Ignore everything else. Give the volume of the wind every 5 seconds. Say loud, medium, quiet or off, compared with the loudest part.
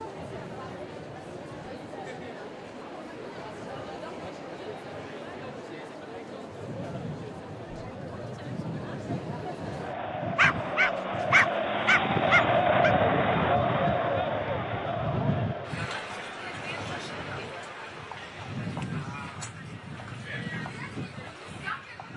quiet, medium, loud, loud, medium.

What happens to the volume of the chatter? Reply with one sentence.
The loudness of the chatter goes up, then down.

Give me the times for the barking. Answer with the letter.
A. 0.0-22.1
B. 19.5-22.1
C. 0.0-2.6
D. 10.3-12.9
D.